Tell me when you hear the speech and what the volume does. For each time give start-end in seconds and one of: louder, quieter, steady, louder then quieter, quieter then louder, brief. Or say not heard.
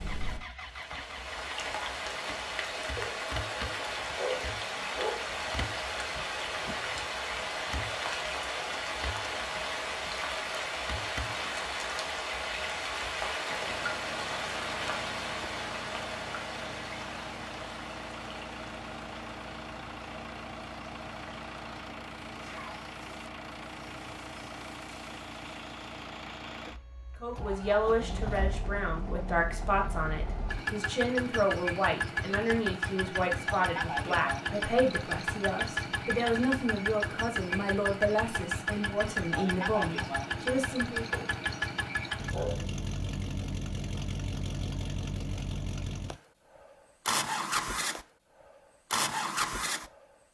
27.2-41.1 steady.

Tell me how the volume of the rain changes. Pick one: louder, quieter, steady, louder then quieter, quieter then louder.
quieter.